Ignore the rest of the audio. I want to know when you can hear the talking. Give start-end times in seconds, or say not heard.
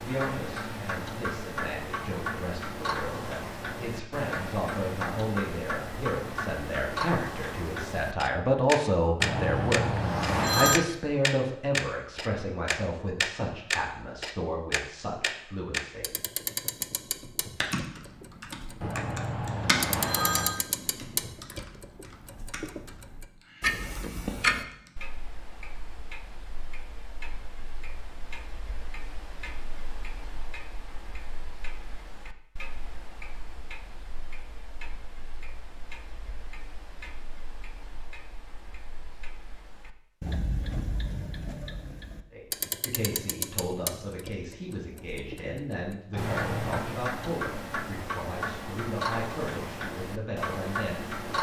0.0-16.1, 42.3-51.1.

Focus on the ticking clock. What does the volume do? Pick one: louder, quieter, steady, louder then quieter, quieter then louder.
quieter then louder.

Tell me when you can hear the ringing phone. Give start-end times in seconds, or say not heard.
9.2-10.8, 18.8-20.6, 46.1-46.9.